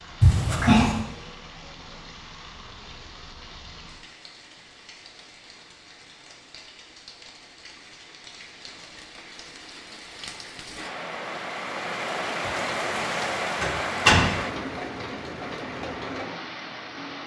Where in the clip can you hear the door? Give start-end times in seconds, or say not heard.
0.2-1.1, 13.6-14.4.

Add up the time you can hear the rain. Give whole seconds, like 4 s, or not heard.
17 s.